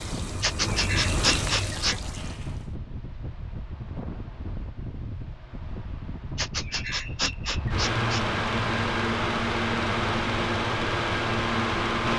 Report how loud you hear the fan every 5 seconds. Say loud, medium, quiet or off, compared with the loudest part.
quiet, loud, loud.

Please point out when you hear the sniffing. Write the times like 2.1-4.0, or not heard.
0.4-1.9, 6.3-8.2.